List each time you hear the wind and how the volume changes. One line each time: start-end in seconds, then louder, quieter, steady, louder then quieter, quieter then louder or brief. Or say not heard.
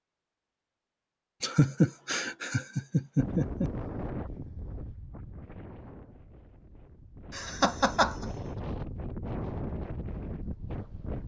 3.1-11.2 quieter then louder.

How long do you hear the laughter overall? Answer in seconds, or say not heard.
3 s.